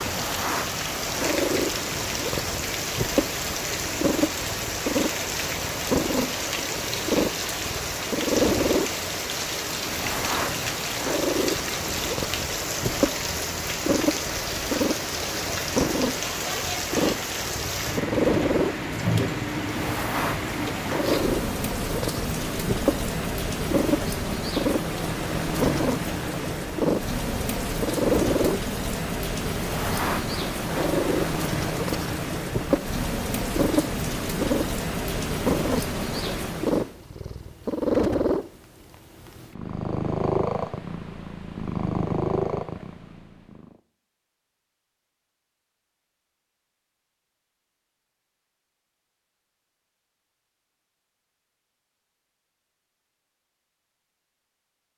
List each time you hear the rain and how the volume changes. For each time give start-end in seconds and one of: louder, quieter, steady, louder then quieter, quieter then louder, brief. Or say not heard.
0.0-37.0 steady.